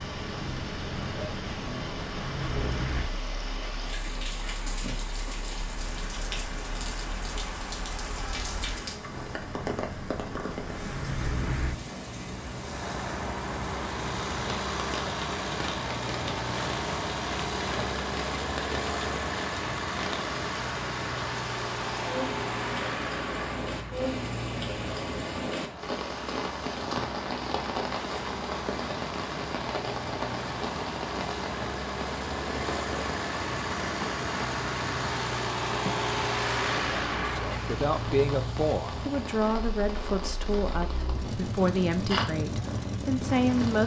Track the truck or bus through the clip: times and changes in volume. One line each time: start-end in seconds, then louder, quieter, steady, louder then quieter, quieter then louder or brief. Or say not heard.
0.0-43.8 louder.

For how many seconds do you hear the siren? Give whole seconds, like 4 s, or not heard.
not heard.